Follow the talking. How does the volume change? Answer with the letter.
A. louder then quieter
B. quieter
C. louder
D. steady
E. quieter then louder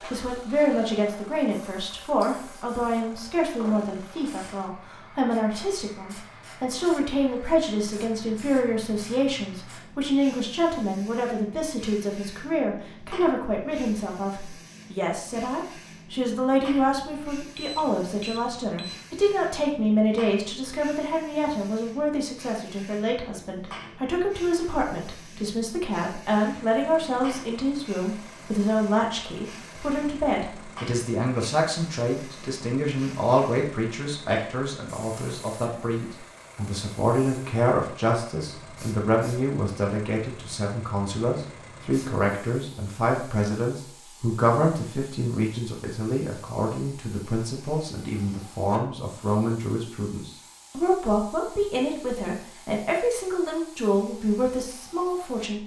D.